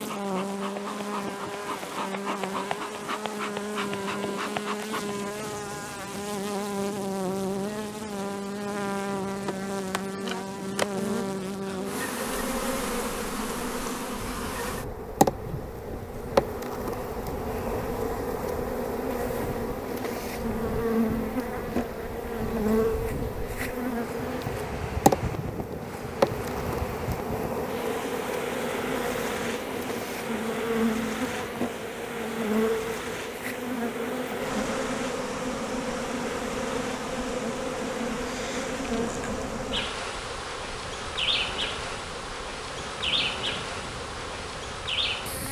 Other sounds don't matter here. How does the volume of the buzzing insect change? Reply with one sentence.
The loudness of the buzzing insect stays about the same.